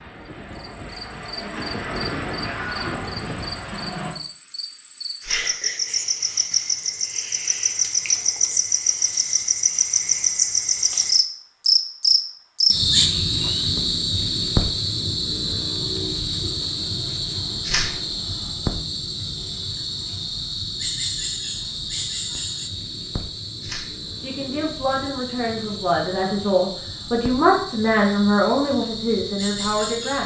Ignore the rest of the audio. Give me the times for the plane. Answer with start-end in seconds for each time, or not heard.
0.0-4.2.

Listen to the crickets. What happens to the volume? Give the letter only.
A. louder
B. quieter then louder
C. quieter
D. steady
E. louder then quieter
E.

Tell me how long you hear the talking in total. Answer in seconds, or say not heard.
6 s.